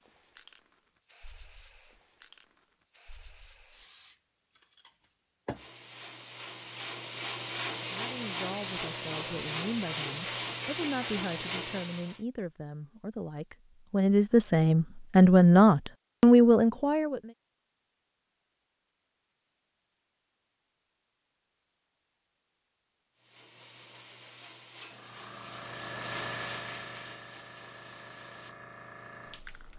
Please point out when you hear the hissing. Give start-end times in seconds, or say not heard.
0.0-12.2, 23.1-29.7.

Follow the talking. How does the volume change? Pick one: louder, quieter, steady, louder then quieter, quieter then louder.
louder.